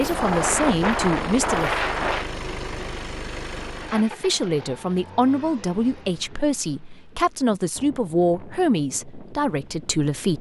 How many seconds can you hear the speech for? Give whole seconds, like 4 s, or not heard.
8 s.